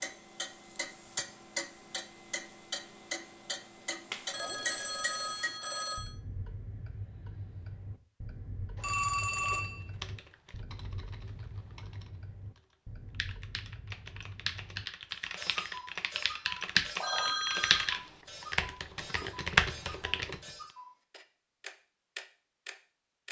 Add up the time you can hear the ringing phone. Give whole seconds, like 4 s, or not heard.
4 s.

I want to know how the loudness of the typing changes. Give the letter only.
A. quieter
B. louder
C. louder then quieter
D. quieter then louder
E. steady
B.